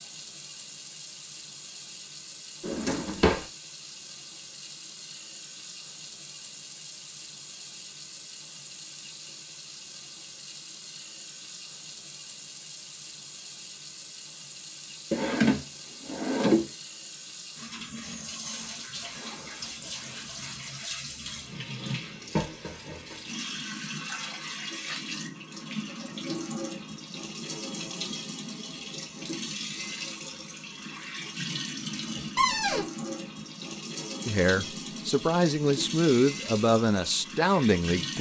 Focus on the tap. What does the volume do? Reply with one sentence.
The volume of the tap goes up.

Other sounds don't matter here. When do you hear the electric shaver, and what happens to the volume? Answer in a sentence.
You can't hear the electric shaver here.